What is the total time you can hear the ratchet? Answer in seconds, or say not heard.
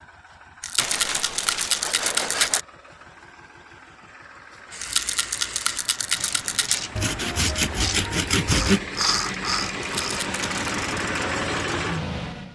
7 s.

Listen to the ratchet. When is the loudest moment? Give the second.
9 s.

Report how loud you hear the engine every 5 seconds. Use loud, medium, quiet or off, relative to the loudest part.
quiet, medium, loud.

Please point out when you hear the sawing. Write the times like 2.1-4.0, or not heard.
0.8-2.6, 7.0-8.8.